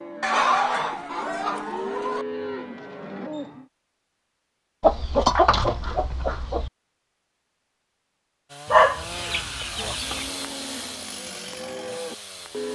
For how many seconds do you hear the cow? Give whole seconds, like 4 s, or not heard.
6 s.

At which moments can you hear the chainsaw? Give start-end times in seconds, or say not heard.
8.4-12.7.